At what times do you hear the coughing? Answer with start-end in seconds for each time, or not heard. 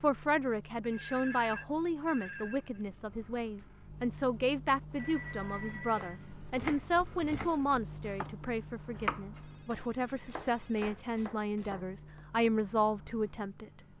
not heard.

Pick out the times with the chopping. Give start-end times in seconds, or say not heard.
5.9-12.4.